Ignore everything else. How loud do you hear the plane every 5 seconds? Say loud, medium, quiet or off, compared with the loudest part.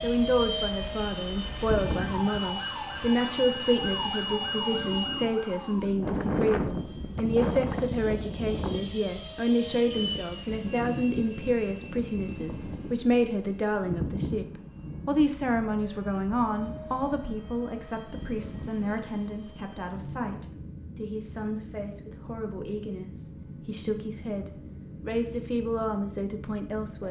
loud, loud, loud, medium, medium, medium.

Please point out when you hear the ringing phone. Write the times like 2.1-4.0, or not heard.
not heard.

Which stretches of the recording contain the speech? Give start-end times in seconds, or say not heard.
0.0-14.4, 15.1-27.0.